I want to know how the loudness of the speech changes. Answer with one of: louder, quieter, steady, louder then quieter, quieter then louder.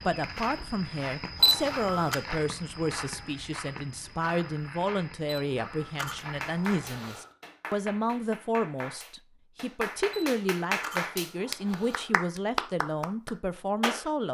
steady.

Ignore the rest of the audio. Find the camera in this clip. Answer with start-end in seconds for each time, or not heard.
1.4-2.1, 5.2-7.3, 10.1-12.2.